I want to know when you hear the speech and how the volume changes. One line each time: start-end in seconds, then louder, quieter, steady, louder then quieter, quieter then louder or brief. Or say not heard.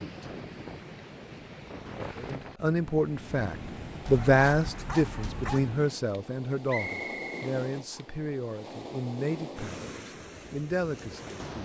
2.1-11.6 quieter.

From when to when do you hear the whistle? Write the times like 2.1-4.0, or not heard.
6.7-8.1.